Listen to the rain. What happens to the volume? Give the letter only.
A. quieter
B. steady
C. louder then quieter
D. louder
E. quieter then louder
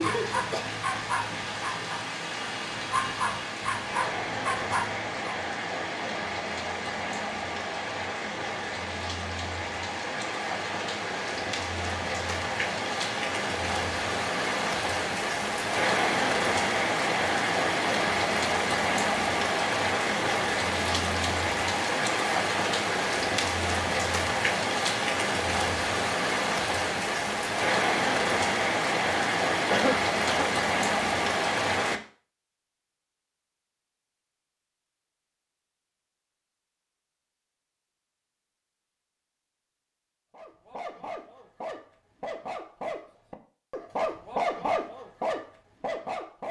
D.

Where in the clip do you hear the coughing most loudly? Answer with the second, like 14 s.
30 s.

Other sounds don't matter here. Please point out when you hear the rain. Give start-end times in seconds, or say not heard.
0.0-32.0.